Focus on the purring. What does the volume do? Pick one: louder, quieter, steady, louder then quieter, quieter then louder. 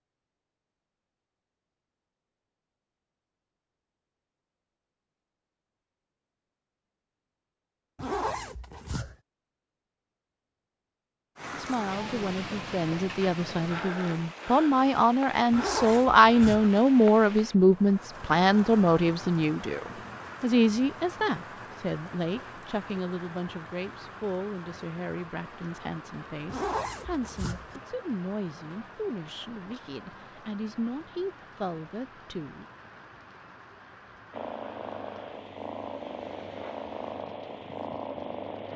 steady.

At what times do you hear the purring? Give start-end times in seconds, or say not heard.
34.3-38.7.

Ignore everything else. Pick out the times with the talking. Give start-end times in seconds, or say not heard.
11.5-32.6.